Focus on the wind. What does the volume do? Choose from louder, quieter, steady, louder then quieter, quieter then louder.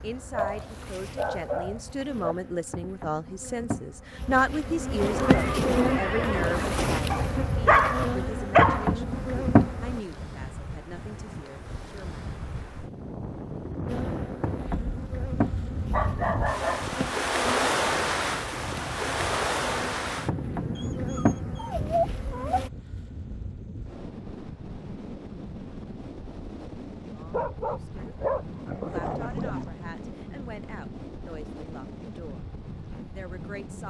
louder then quieter.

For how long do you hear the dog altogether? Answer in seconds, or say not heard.
9 s.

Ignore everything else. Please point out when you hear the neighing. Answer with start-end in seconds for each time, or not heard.
5.0-7.0.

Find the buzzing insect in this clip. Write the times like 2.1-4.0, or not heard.
0.0-10.0, 13.8-22.7.